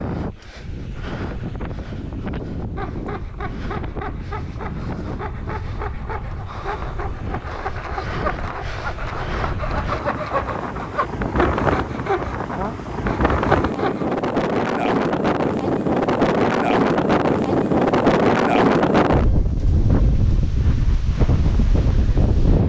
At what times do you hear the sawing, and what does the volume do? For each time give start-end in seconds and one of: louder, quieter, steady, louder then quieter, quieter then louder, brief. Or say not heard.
2.8-14.2 louder.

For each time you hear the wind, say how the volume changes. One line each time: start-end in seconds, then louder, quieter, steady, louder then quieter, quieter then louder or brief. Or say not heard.
0.0-22.6 louder.